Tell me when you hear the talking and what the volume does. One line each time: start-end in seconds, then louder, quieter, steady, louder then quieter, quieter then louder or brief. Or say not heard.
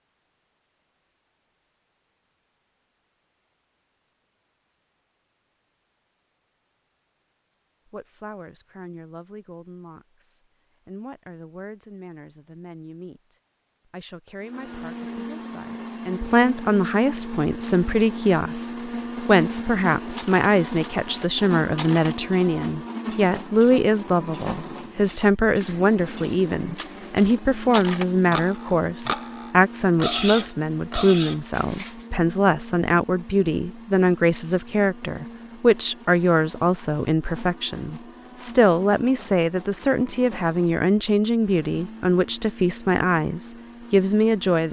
7.8-44.6 louder.